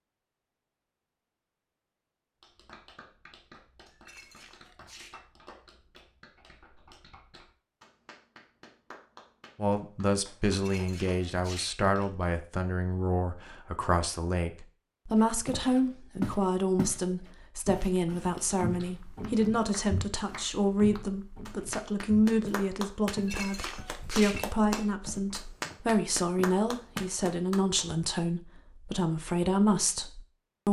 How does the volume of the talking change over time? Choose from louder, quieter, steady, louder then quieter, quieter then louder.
steady.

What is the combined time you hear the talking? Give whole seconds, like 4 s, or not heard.
21 s.